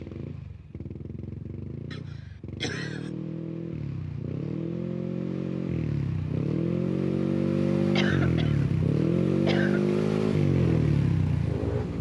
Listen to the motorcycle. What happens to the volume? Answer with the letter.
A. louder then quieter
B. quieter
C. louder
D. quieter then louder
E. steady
C.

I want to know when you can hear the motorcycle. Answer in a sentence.
The motorcycle can be heard from 0.0 to 11.9 s.